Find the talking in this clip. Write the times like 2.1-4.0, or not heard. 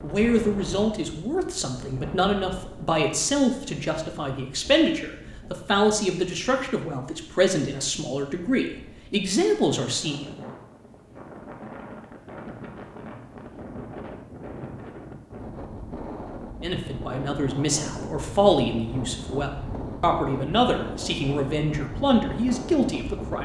0.0-10.2, 16.6-23.3.